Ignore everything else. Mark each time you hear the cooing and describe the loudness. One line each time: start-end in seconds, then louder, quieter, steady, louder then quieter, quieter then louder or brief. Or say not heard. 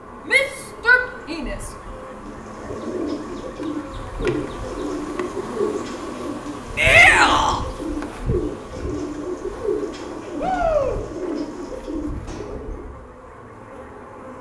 2.2-12.9 steady.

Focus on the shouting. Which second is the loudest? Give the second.
7 s.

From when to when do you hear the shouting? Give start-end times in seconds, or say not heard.
0.2-1.6, 6.8-7.6, 10.4-11.0.